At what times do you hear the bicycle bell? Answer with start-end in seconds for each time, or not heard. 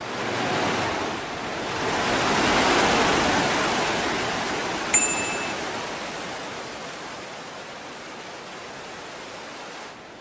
4.9-5.5.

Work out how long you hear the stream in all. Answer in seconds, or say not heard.
10 s.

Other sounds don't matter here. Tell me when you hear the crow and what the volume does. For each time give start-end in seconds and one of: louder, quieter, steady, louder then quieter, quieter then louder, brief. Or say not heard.
not heard.